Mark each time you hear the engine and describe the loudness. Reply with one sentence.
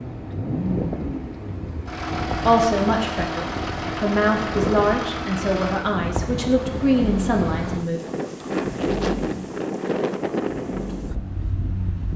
The engine can be heard from 0.0 to 12.1 s, getting quieter.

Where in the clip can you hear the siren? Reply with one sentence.
The siren can't be heard in this clip.